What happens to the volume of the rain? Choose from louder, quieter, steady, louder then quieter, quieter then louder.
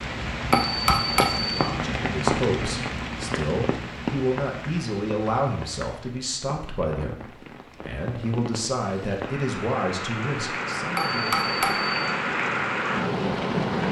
quieter then louder.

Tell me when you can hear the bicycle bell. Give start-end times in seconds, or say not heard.
0.5-1.6, 10.9-11.9.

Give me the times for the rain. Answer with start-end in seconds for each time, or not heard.
0.0-13.8.